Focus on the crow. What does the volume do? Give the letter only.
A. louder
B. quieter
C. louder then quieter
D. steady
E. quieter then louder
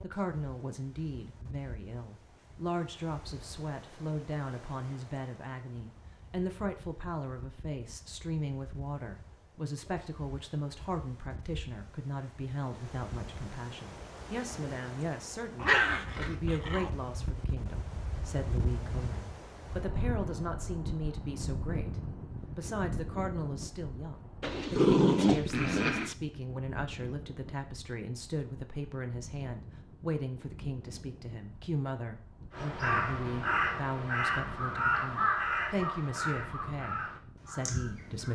B.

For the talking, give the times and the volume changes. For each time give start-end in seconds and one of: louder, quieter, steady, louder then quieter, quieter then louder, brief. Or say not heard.
0.0-21.9 steady
22.6-38.3 steady.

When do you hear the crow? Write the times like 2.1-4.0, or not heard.
32.5-38.3.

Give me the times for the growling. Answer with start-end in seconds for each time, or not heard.
15.6-16.9, 24.4-26.1.